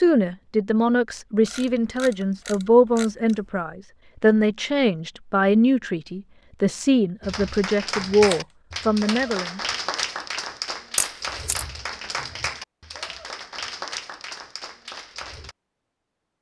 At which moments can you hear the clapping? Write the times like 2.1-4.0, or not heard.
7.2-15.6.